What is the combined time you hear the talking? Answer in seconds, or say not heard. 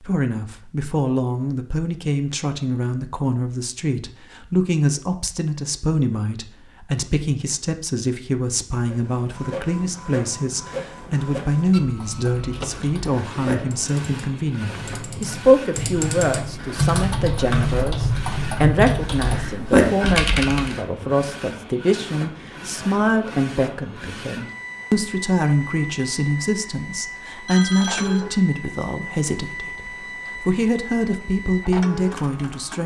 33 s.